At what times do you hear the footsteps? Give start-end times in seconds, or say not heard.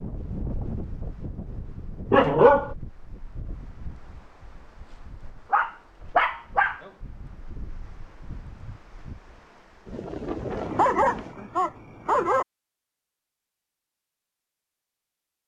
not heard.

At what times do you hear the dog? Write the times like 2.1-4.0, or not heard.
2.1-2.7, 5.5-6.8, 10.6-12.4.